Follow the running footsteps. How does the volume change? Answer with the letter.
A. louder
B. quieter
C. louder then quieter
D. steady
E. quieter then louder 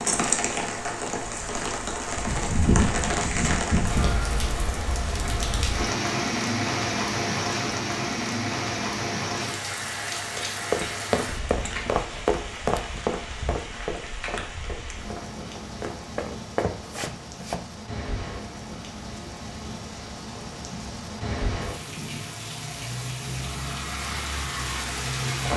E.